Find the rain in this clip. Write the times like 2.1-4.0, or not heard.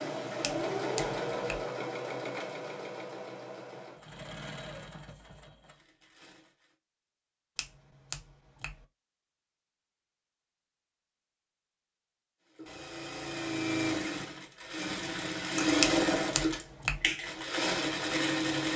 not heard.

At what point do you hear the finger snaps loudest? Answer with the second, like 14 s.
16 s.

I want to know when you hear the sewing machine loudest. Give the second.
16 s.